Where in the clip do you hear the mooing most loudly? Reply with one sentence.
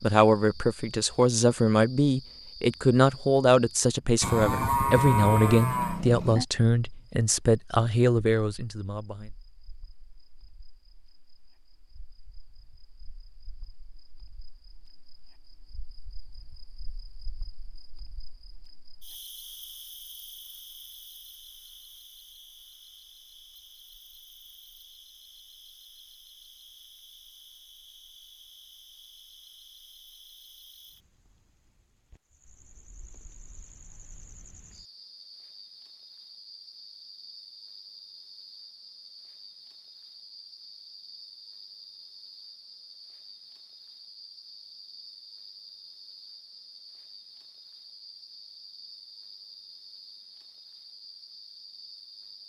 The loudest moment of the mooing is at 5 seconds.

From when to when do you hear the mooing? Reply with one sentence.
You can hear the mooing from 4.2 to 6.5 s.